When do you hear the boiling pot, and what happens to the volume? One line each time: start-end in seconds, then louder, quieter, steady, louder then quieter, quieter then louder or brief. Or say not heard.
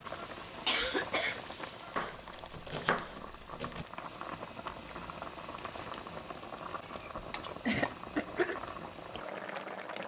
0.0-10.0 steady.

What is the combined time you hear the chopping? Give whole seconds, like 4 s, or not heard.
2 s.